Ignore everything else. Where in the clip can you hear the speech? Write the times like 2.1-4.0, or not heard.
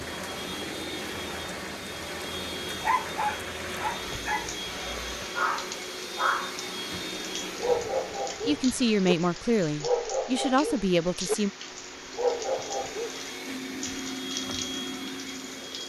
8.4-11.5.